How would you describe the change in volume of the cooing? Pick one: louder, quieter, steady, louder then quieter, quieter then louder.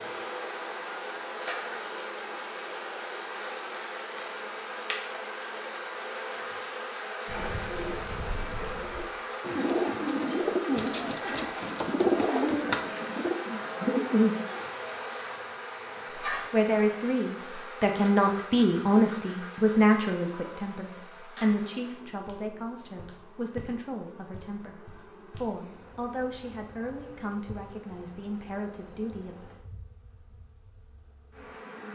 louder.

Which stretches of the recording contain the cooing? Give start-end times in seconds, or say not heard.
7.2-14.7.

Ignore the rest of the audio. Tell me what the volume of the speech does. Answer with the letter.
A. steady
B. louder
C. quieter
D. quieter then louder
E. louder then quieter
C.